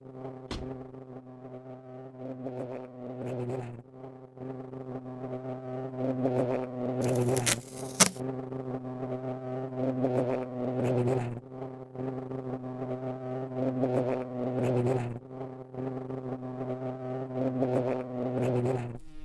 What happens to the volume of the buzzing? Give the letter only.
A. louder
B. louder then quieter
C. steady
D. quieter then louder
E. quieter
A.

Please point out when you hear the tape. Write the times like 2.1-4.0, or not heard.
7.0-8.2.